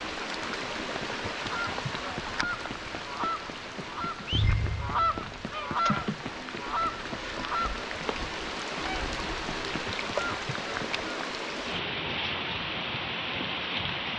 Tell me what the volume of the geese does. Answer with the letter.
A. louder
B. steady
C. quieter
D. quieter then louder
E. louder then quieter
E.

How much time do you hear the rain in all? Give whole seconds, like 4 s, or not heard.
14 s.